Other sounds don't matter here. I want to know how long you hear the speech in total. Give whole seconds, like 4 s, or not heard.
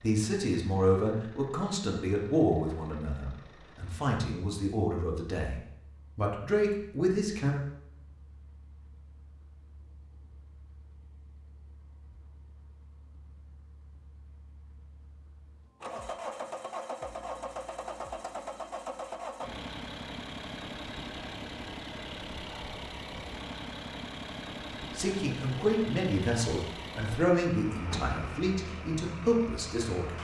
13 s.